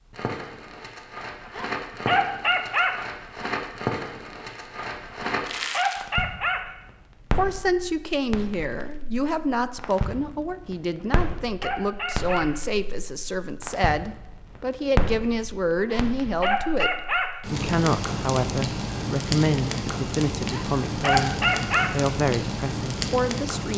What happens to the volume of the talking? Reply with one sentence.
The loudness of the talking stays about the same.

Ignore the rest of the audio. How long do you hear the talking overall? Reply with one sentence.
The talking can be heard for 16 seconds in total.